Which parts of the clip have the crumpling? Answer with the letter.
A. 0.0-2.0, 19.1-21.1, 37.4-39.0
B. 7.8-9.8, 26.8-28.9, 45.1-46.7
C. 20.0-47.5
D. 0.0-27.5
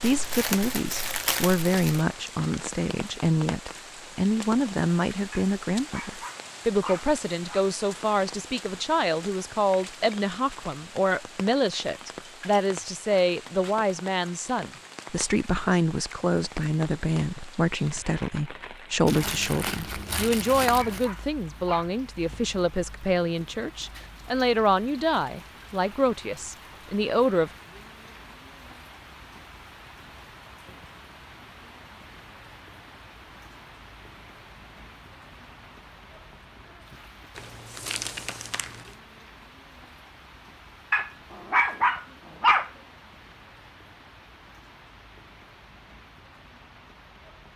A.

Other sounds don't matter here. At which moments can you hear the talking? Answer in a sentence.
You can hear the talking from 0.0 to 27.5 s.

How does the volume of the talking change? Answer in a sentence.
The loudness of the talking stays about the same.